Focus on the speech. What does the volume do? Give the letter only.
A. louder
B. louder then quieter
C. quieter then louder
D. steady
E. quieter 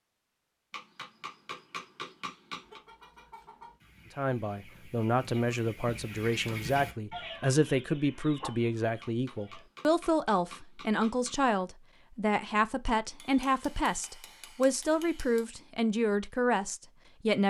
D.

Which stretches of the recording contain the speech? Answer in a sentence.
The speech can be heard from 4.2 to 17.4 s.